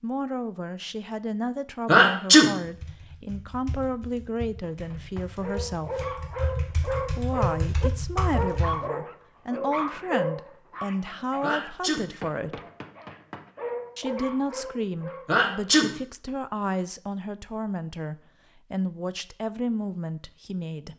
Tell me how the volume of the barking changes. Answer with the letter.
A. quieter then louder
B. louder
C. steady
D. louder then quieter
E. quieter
A.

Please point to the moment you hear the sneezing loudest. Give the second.
2 s.